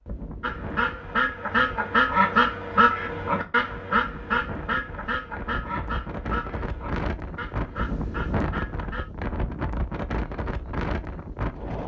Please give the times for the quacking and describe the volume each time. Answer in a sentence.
The quacking can be heard from 0.4 to 9.1 s, getting quieter.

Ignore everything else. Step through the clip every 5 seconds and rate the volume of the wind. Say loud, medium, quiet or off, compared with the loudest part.
medium, loud, loud.